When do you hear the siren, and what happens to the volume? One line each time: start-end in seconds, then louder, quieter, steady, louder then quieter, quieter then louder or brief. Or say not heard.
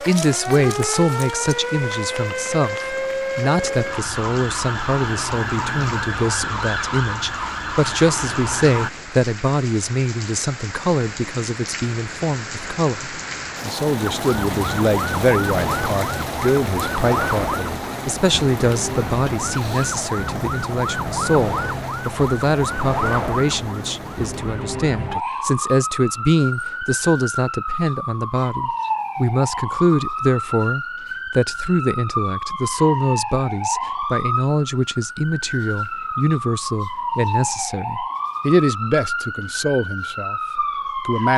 0.0-8.9 steady
14.0-41.3 steady.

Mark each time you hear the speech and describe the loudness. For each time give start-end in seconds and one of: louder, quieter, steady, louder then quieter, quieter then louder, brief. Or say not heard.
0.0-41.3 steady.